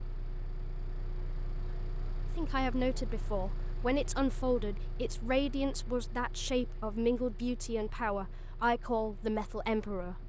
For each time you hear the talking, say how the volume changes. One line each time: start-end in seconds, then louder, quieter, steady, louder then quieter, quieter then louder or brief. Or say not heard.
2.4-10.2 steady.